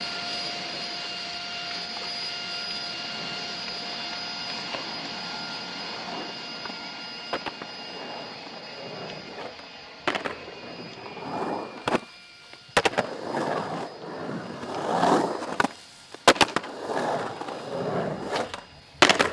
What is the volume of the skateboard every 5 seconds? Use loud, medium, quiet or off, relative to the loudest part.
quiet, quiet, medium, loud.